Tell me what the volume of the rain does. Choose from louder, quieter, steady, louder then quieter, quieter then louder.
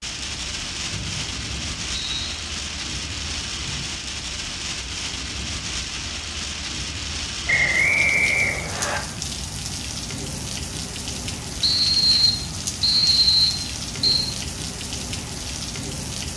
steady.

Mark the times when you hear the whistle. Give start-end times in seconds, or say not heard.
0.8-2.4, 7.5-9.0, 11.6-14.3.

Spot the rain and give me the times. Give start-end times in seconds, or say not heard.
0.0-16.3.